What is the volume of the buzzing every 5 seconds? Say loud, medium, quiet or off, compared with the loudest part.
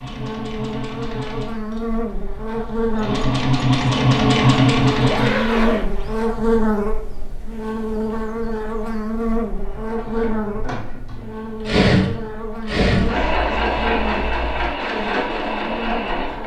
loud, loud, medium, medium.